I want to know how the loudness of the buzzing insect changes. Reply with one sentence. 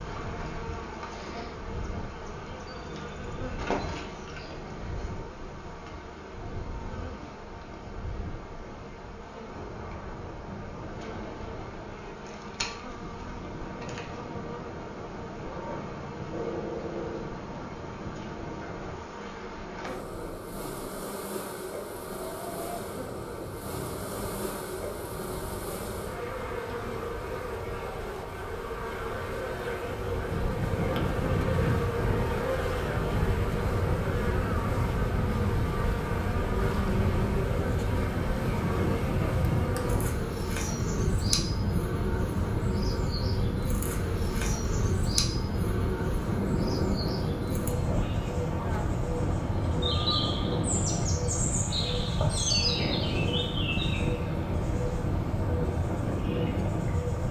The volume of the buzzing insect goes up.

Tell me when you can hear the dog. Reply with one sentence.
The dog can be heard from 15.4 to 17.4 s.